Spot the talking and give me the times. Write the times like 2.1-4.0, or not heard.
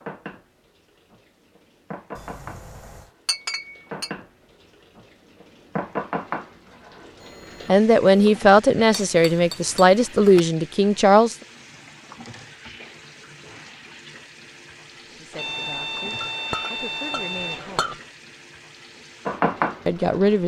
7.7-11.3, 15.1-18.0, 19.9-20.4.